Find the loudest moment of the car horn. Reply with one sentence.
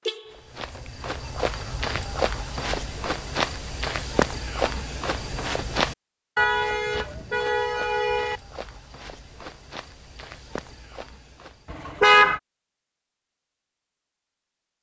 The loudest moment of the car horn is at 12 seconds.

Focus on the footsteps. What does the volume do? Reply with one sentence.
The volume of the footsteps goes down.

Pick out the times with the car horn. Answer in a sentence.
The car horn can be heard from 0.1 to 0.9 s, from 6.3 to 8.4 s and from 11.7 to 12.4 s.